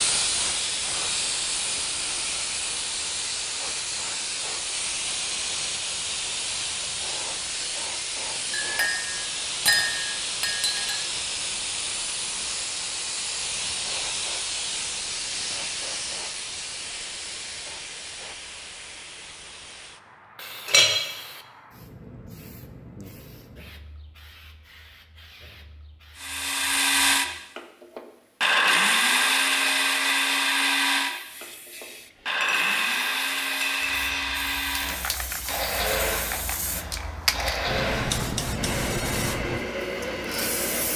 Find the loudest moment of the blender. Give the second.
29 s.